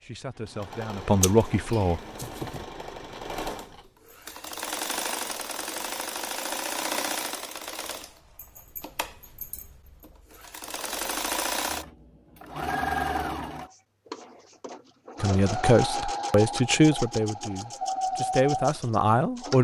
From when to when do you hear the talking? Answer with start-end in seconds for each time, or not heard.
0.0-2.0, 15.2-19.5.